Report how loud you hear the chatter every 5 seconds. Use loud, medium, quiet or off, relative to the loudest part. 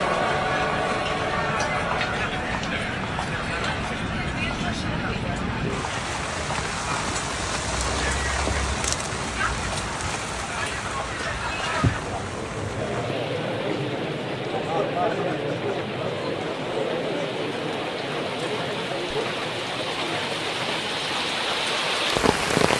loud, medium, loud, loud, medium.